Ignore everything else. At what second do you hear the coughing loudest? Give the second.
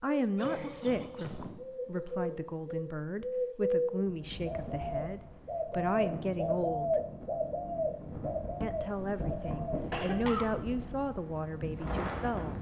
10 s.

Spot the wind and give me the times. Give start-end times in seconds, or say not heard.
4.0-12.5.